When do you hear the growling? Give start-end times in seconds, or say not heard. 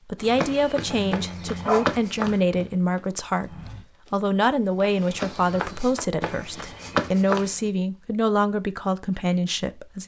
0.8-2.6.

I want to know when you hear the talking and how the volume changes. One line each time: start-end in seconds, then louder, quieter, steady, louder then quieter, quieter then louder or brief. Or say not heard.
0.1-10.0 steady.